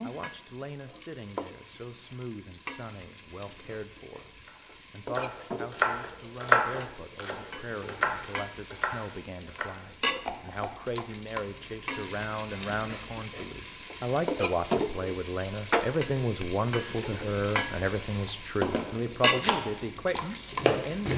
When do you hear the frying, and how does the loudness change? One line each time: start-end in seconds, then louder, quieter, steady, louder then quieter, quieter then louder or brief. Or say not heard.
0.0-21.1 louder.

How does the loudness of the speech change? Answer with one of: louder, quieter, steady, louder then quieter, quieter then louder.
louder.